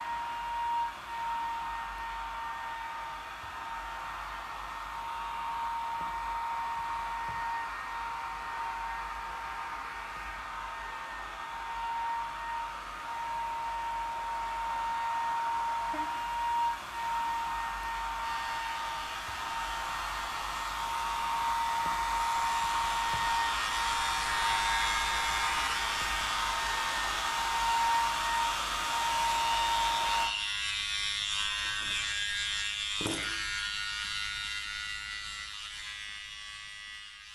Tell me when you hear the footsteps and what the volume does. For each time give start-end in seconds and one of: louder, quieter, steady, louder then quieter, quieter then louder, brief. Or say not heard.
not heard.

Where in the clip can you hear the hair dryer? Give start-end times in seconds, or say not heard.
0.0-30.4.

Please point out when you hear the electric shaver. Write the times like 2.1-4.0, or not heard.
18.1-37.3.